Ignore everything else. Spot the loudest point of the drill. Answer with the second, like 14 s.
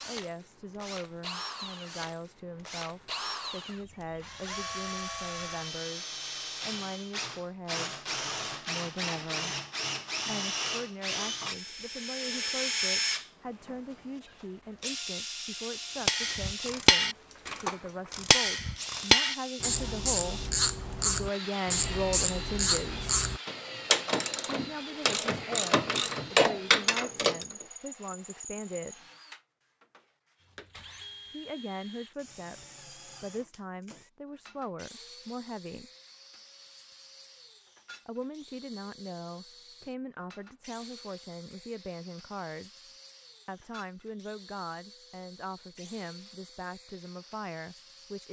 13 s.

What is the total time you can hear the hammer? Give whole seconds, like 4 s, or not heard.
not heard.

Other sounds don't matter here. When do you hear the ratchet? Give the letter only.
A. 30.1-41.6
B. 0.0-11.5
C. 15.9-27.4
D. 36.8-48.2
C.